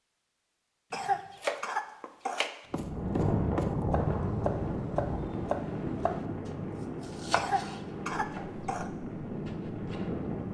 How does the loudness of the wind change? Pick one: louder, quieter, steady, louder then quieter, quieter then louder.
quieter.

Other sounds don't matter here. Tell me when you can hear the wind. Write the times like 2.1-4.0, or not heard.
2.7-10.4.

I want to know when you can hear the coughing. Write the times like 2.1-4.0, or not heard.
0.9-2.5, 7.3-8.9.